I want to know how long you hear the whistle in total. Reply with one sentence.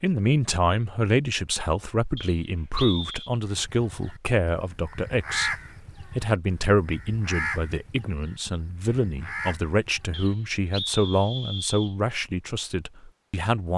You can hear the whistle for 3 seconds altogether.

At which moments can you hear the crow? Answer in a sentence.
The crow can be heard from 3.5 to 10.9 s.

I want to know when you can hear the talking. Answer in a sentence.
The talking can be heard from 0.0 to 13.7 s.